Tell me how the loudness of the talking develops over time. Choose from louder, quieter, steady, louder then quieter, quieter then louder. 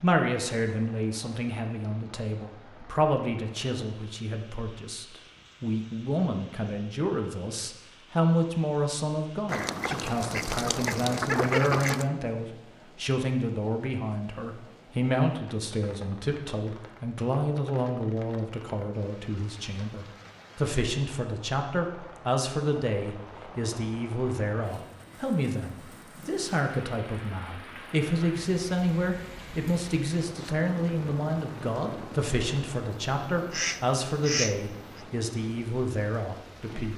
steady.